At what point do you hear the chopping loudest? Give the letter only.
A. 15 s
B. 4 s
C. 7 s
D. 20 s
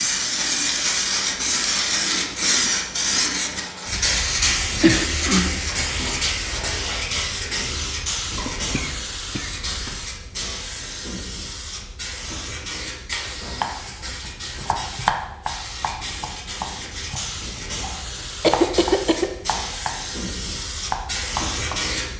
A.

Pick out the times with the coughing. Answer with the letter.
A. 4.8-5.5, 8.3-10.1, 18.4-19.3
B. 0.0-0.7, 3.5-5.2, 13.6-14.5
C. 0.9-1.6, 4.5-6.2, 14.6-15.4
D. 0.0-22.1
A.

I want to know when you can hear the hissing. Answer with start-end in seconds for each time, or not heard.
0.0-22.1.